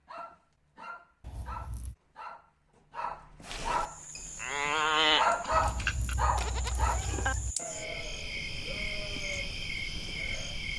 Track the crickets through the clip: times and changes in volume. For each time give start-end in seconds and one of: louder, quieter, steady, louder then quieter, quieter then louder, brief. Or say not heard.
3.8-10.7 louder.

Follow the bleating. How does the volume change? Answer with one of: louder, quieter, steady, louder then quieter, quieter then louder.
quieter.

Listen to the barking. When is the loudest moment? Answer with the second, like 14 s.
5 s.